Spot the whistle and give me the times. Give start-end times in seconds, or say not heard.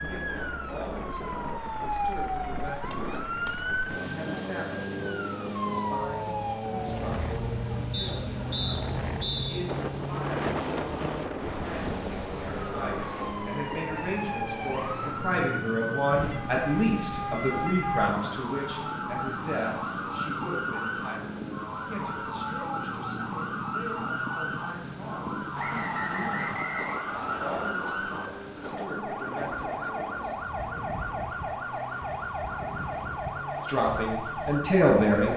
7.9-9.7, 25.6-27.6.